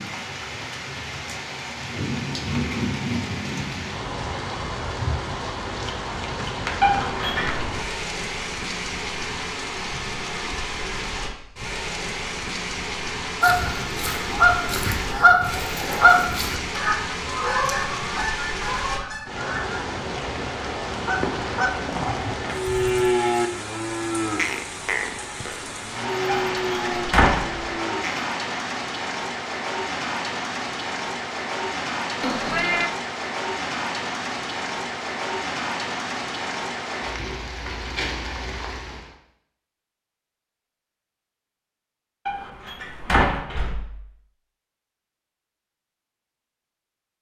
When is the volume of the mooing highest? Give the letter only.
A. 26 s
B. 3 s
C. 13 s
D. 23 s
D.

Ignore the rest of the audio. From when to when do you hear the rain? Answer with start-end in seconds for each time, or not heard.
0.0-39.1.